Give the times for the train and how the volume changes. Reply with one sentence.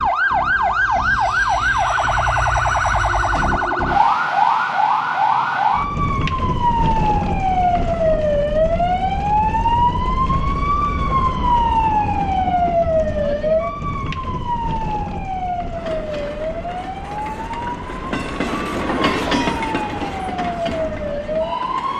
The train can be heard from 15.8 to 21.9 s, getting louder then quieter.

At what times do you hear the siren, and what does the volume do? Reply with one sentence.
The siren can be heard from 0.0 to 21.9 s, getting quieter.